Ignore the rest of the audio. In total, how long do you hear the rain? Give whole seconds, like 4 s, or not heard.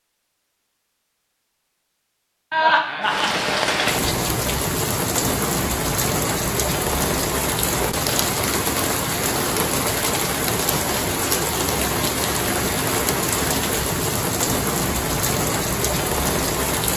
14 s.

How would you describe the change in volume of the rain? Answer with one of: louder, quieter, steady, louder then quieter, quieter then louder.
steady.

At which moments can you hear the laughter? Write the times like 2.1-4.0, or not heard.
2.5-3.5.